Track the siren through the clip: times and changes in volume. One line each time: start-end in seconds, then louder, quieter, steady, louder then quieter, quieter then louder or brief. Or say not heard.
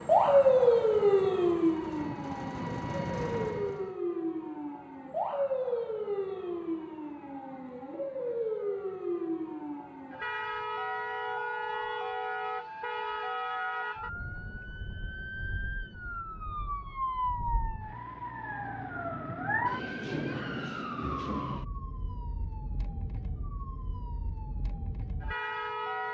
0.0-26.0 quieter.